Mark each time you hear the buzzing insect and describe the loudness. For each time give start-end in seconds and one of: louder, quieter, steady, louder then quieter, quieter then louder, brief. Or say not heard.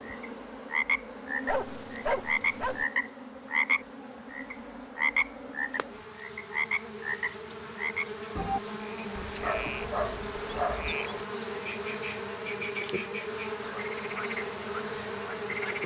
0.0-15.8 louder.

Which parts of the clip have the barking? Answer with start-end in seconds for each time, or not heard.
1.4-2.9, 9.2-10.9.